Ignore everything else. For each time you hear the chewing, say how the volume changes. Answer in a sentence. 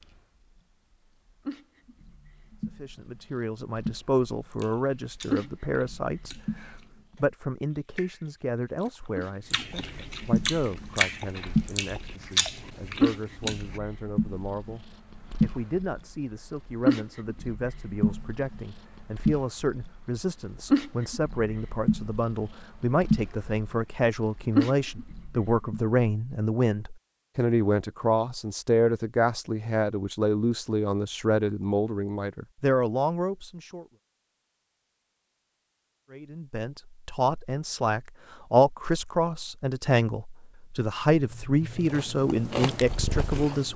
You can hear the chewing from 4.4 to 13.8 s, getting louder; and briefly from 41.7 to 43.7 s.